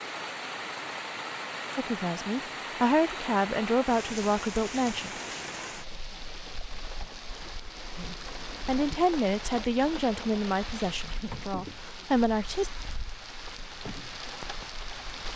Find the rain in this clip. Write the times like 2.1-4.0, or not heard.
0.0-15.3.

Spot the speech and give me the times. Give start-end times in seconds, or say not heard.
1.8-5.2, 8.0-12.7.